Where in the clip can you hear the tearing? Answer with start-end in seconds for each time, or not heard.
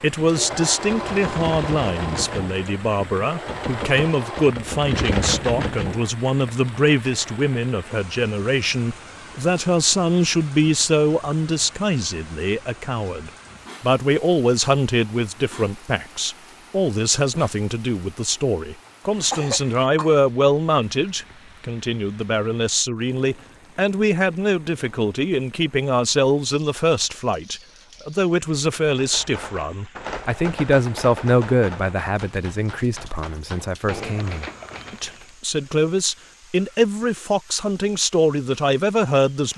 not heard.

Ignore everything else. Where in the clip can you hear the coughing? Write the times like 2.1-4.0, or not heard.
18.9-20.1.